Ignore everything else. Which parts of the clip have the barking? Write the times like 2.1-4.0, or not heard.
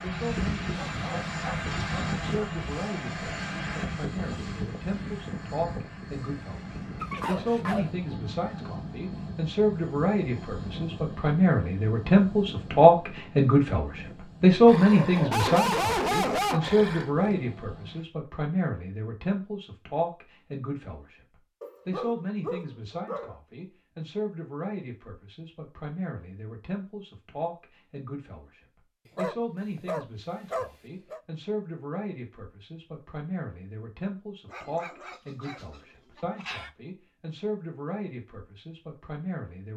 0.8-2.5, 7.0-7.9, 14.7-17.4, 21.6-23.4, 29.1-31.2, 34.5-36.7.